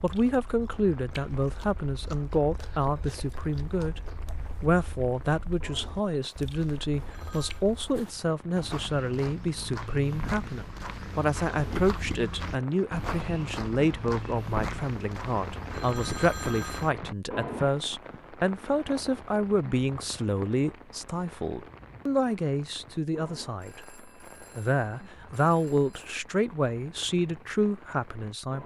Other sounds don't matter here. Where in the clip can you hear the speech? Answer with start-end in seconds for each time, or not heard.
0.0-23.9, 24.6-28.6.